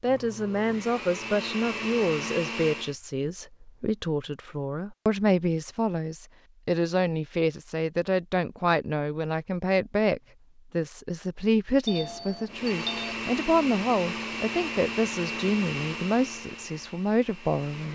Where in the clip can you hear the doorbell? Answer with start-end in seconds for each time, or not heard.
11.8-13.2.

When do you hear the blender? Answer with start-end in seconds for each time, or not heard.
0.0-3.0, 12.4-17.9.